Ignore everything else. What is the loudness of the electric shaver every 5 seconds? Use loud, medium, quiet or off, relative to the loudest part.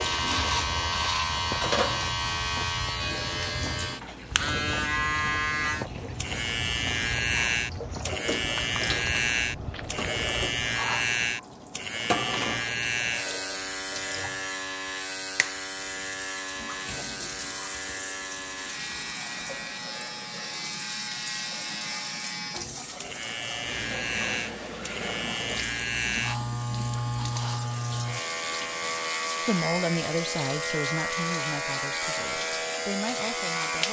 loud, loud, loud, medium, medium, loud, loud.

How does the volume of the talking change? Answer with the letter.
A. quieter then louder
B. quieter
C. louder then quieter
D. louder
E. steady
A.